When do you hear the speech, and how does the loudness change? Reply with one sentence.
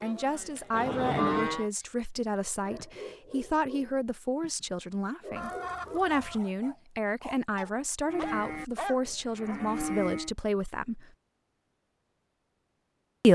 You can hear the speech from 0.0 to 11.1 s, at a steady volume.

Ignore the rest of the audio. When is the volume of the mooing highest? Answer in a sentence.
The volume of the mooing peaks at 1 second.